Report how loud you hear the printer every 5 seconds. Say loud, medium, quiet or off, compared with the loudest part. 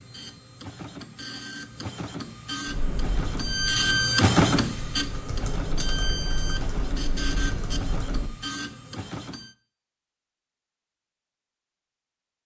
loud, medium, off.